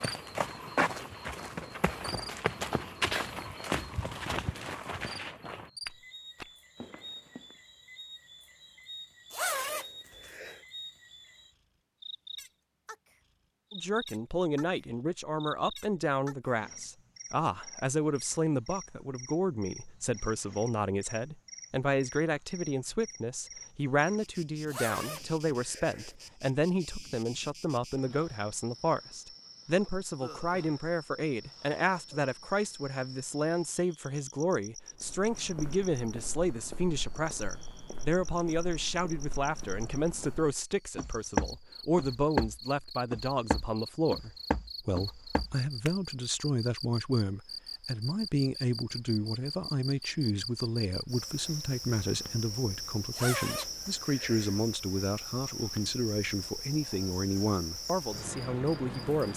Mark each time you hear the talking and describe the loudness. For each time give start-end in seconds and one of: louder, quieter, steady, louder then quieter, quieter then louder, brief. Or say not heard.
13.7-59.3 steady.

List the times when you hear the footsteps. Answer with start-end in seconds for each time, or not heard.
0.0-7.5, 35.0-46.0.